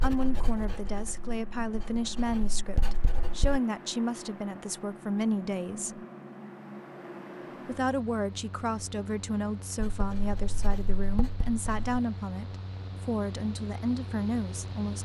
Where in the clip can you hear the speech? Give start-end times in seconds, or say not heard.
0.0-6.0, 7.7-15.0.